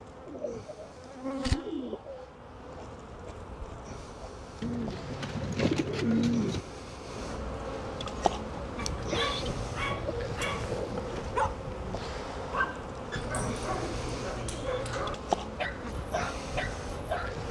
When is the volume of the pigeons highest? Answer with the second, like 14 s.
6 s.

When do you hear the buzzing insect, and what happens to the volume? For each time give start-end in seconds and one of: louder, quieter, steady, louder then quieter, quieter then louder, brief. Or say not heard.
0.0-17.4 louder.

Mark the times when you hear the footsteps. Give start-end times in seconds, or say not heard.
not heard.